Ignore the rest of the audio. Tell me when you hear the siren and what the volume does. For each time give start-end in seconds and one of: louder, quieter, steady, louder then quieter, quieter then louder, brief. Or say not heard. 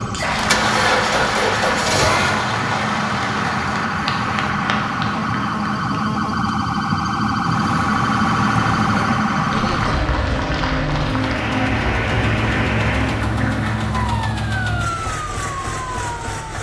0.0-16.5 louder then quieter.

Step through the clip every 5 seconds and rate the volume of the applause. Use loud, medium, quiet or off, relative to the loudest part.
loud, medium, loud, off.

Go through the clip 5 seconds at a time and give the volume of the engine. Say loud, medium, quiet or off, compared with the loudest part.
loud, medium, loud, medium.